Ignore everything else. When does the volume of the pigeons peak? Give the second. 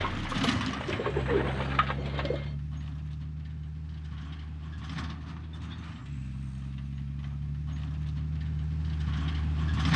1 s.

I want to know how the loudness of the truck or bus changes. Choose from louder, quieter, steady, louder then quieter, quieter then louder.
quieter then louder.